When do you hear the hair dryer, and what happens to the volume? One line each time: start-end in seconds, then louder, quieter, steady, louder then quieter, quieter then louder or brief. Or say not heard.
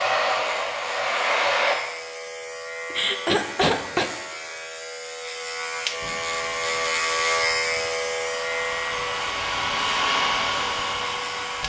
0.0-1.8 brief
6.0-11.6 louder.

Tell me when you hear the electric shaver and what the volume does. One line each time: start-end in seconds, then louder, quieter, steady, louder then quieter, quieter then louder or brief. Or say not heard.
0.0-11.6 louder then quieter.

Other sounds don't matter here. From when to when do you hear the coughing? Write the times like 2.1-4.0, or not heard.
2.9-4.1.